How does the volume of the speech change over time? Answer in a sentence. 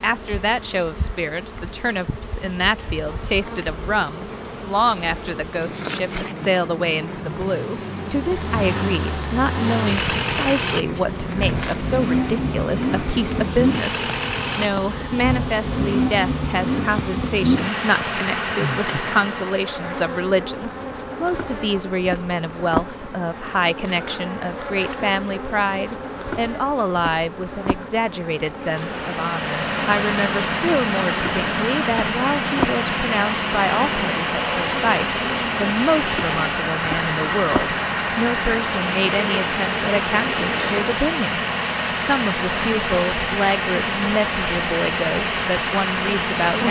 The volume of the speech stays about the same.